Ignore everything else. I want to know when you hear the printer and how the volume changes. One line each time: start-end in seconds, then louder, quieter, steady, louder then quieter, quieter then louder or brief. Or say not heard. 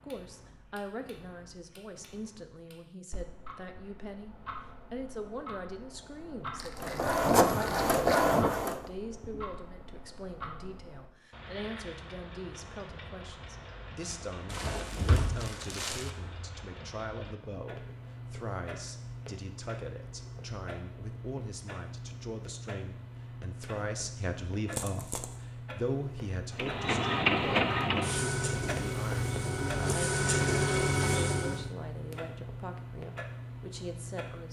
6.8-8.9 brief
26.6-31.7 quieter then louder.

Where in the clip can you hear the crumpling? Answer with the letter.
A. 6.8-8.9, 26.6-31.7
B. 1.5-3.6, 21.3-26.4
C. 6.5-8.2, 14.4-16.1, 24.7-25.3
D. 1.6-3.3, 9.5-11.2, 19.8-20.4
C.